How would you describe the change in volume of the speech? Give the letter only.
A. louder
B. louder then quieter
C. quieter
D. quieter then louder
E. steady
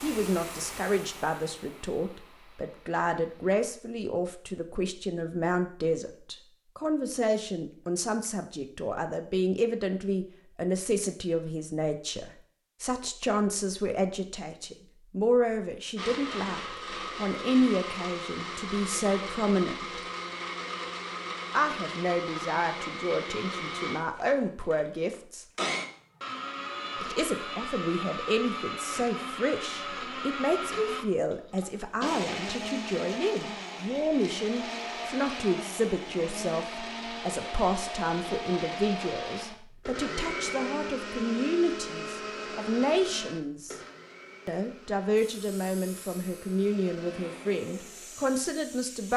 E.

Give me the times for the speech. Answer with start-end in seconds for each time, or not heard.
0.0-20.0, 21.6-25.4, 27.0-43.8, 44.5-49.1.